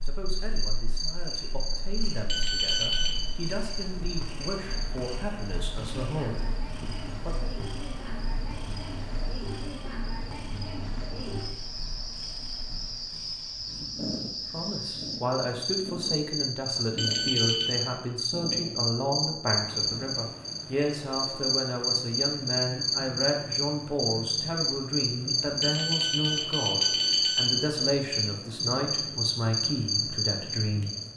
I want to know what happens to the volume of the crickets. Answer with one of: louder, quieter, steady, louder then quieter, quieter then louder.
louder.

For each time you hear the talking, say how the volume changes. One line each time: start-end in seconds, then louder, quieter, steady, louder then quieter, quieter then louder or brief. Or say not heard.
0.0-7.3 louder
14.4-30.9 steady.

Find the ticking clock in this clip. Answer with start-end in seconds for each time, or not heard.
not heard.